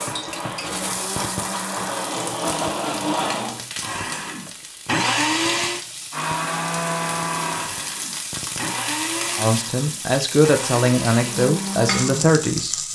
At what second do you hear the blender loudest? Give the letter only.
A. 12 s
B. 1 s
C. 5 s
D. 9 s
C.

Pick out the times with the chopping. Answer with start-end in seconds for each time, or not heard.
not heard.